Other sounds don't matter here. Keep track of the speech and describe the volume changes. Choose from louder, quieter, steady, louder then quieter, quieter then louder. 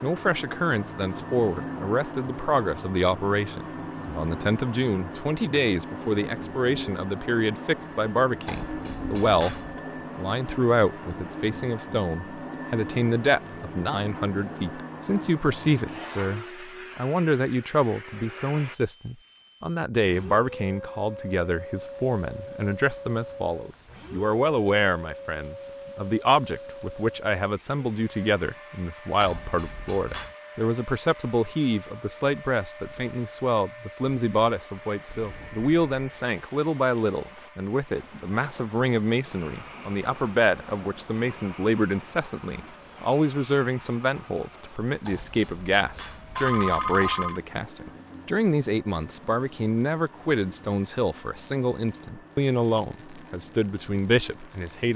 steady.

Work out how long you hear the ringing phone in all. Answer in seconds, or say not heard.
5 s.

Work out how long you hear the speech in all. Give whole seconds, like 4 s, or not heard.
55 s.